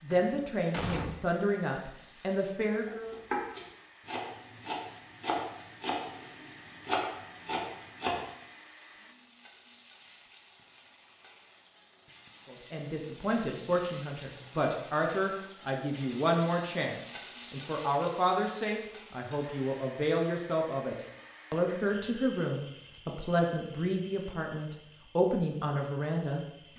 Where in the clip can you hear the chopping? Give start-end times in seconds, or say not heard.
2.9-8.2.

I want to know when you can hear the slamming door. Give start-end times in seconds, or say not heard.
0.1-1.2.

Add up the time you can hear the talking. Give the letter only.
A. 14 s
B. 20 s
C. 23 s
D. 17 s
D.